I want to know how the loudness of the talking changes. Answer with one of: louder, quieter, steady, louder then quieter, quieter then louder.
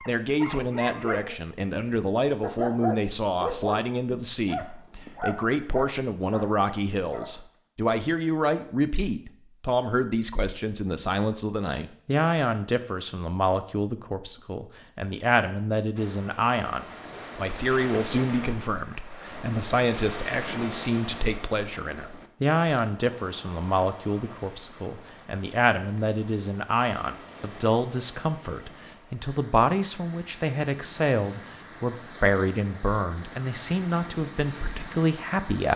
steady.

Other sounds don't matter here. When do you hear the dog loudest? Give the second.
3 s.